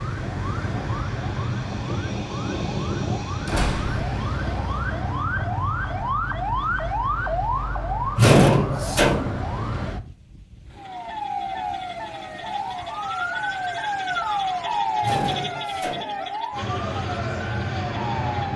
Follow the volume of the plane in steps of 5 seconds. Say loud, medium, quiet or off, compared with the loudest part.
loud, off, off, loud.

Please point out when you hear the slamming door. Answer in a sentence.
You can hear the slamming door from 3.5 to 4.0 s, from 8.2 to 9.4 s and from 15.0 to 16.2 s.